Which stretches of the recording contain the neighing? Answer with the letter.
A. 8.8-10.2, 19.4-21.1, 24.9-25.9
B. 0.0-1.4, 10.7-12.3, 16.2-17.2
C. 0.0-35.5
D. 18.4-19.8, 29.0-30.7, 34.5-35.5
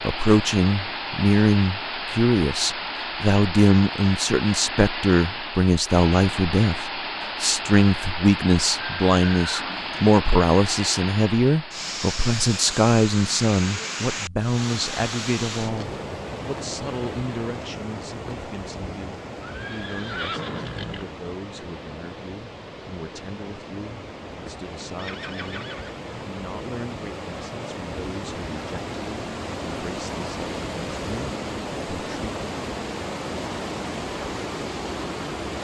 A.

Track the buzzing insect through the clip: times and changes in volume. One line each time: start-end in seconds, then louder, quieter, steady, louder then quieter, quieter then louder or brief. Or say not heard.
not heard.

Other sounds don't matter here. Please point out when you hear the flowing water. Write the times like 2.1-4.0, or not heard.
0.0-35.5.